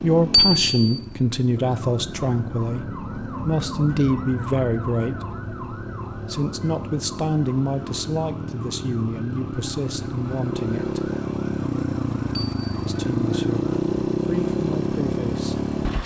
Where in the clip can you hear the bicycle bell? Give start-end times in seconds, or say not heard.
0.3-1.0, 12.3-12.8.